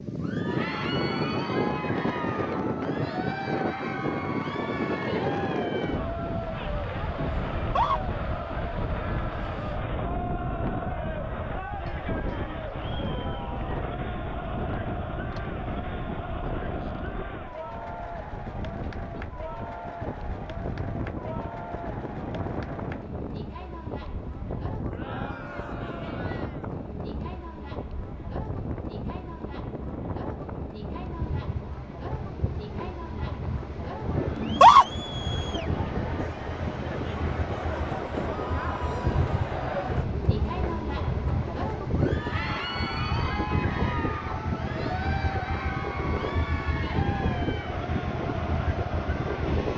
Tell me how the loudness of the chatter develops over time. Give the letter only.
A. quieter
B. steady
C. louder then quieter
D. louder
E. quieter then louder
E.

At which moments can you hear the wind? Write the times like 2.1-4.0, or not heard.
0.0-49.7.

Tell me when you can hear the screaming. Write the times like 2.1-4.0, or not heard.
7.5-8.0, 34.4-34.9.